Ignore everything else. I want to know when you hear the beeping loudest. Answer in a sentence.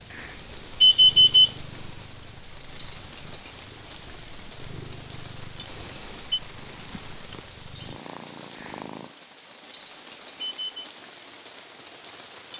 The loudest moment of the beeping is at 1 second.